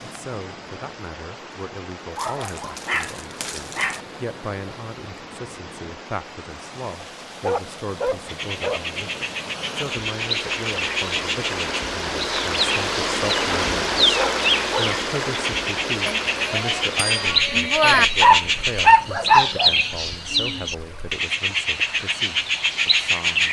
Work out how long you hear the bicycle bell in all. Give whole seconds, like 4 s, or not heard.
2 s.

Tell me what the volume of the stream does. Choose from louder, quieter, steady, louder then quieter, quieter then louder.
louder then quieter.